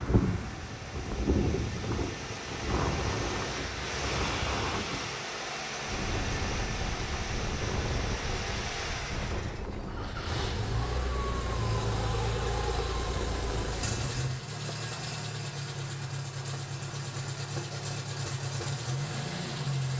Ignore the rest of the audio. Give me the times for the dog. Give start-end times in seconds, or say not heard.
not heard.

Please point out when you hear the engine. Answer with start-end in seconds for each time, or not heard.
0.0-19.9.